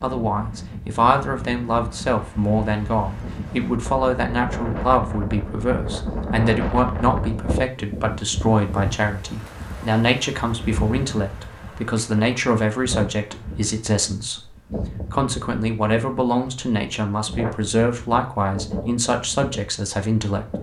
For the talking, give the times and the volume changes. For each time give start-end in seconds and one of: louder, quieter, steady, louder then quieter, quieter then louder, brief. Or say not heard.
0.0-20.5 steady.